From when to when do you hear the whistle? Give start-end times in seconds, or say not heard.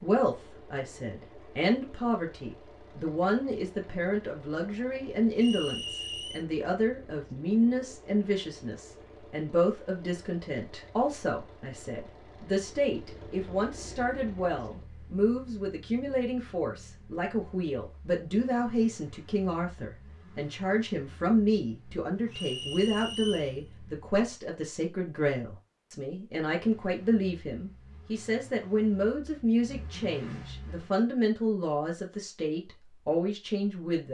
5.3-6.5, 22.3-23.6.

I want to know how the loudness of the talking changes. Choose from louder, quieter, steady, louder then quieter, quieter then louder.
steady.